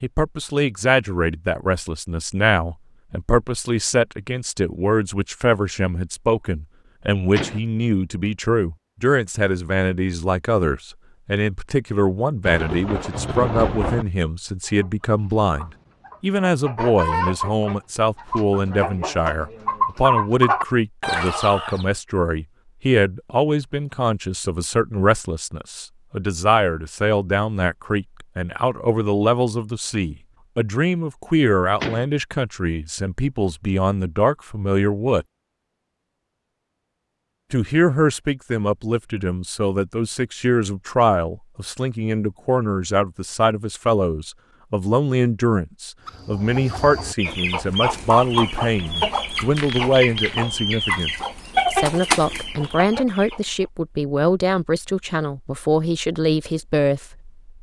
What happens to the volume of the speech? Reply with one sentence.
The volume of the speech stays about the same.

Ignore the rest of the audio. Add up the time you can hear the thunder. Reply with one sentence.
You can hear the thunder for 2 seconds altogether.